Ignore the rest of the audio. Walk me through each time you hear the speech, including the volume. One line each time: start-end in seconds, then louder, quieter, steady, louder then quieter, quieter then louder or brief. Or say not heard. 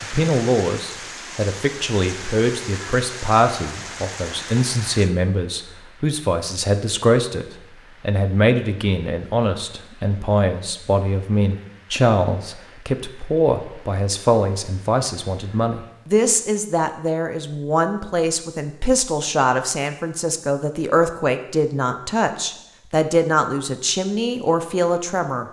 0.0-25.4 steady.